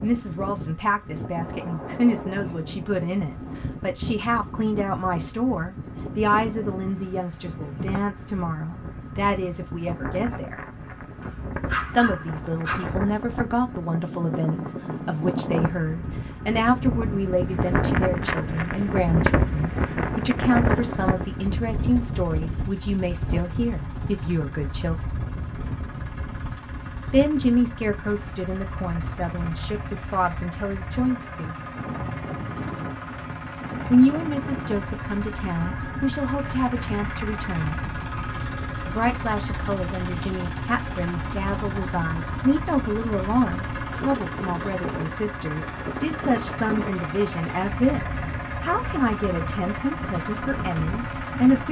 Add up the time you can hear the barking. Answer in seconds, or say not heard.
2 s.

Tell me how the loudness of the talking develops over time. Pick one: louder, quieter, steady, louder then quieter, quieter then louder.
steady.